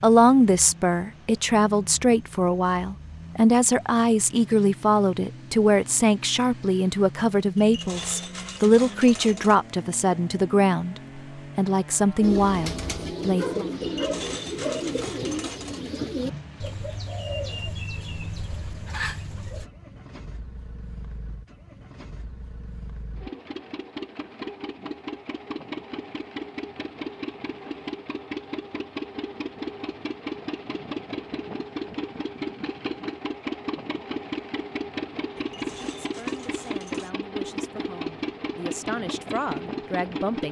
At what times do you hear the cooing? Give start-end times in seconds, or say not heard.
12.2-19.6.